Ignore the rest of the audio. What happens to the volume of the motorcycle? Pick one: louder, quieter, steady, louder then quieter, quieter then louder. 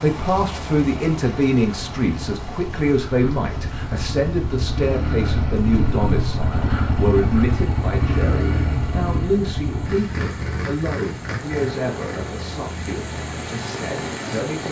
louder then quieter.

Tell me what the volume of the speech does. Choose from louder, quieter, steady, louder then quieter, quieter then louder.
quieter.